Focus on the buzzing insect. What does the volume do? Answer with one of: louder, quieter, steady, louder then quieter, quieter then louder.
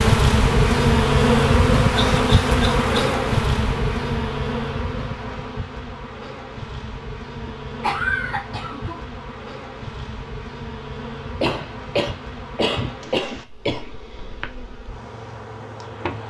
quieter.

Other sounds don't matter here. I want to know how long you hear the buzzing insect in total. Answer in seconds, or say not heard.
16 s.